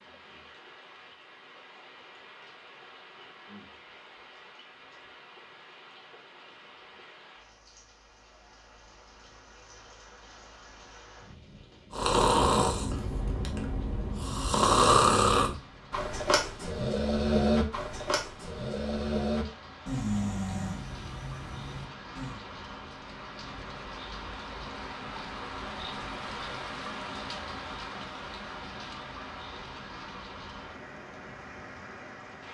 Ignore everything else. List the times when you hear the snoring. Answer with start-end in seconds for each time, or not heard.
11.9-22.4.